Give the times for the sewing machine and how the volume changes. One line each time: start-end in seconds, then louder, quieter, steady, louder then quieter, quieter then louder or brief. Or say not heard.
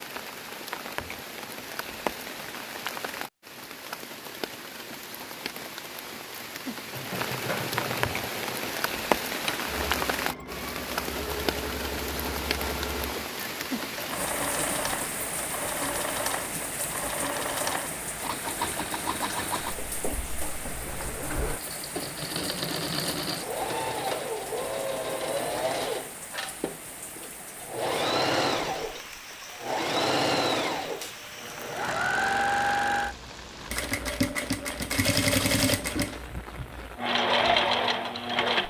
6.9-38.6 louder.